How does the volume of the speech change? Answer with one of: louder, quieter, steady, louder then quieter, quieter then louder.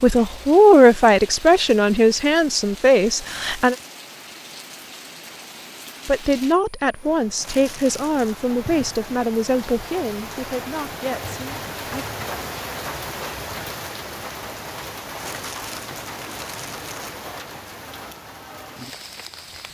quieter.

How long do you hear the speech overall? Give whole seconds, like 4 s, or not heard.
10 s.